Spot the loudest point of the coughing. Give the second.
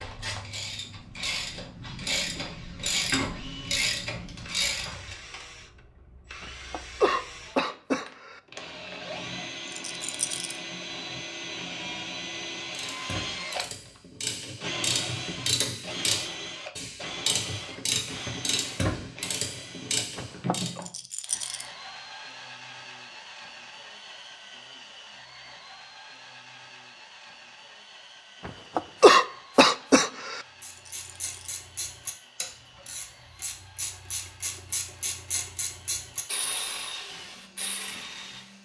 29 s.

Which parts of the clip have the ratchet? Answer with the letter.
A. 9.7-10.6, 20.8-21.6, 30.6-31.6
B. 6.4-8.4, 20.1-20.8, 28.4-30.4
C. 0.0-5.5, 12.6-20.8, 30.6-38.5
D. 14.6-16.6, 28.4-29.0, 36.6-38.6
C.